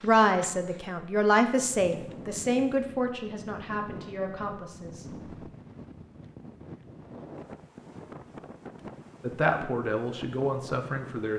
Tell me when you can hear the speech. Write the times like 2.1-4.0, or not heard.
0.0-5.3, 9.2-11.3.